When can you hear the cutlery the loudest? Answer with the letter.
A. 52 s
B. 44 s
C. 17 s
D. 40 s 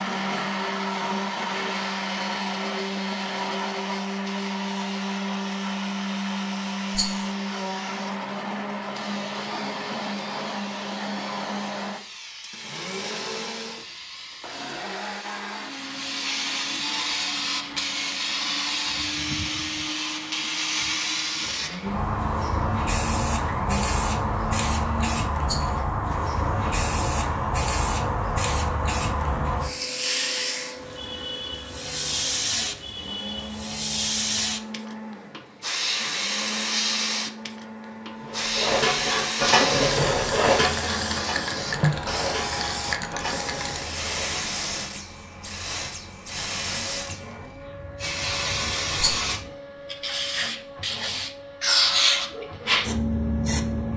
D.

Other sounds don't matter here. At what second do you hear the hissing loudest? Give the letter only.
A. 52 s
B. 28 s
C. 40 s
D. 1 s
A.